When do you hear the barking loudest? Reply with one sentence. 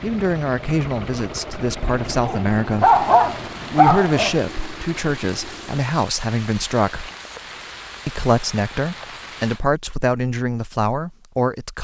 The volume of the barking peaks at 3 seconds.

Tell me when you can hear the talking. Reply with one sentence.
The talking can be heard from 0.0 to 3.0 s, from 3.7 to 7.1 s and from 8.1 to 11.7 s.